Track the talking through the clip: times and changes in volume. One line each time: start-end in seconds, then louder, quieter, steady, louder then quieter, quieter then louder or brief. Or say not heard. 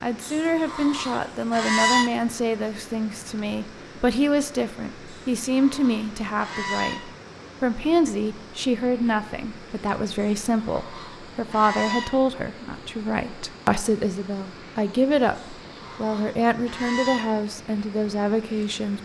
0.0-19.0 steady.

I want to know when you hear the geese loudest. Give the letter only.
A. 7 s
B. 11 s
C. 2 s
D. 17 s
C.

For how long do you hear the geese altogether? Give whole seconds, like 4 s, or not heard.
8 s.